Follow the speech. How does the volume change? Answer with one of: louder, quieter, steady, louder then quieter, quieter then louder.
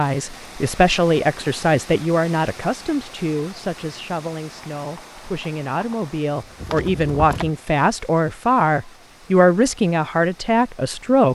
quieter then louder.